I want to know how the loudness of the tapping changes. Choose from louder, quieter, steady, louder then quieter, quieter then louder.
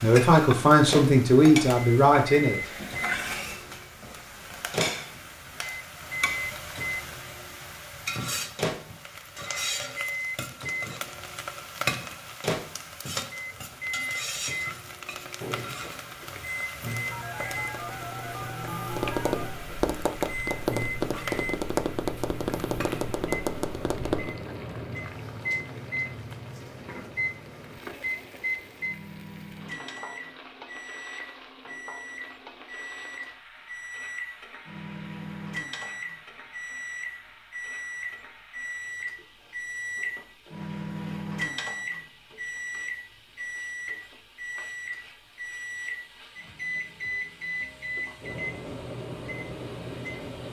louder.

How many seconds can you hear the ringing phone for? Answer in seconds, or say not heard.
2 s.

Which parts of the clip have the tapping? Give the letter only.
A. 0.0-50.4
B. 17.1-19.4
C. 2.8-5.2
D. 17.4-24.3
D.